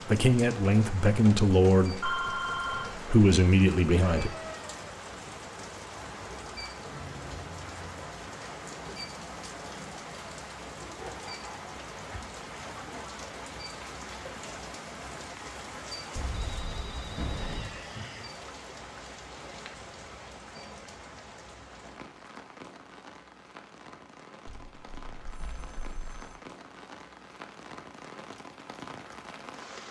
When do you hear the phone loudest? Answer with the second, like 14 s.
2 s.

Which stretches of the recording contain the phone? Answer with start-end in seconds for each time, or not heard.
2.0-3.0, 16.1-17.8, 24.4-26.4.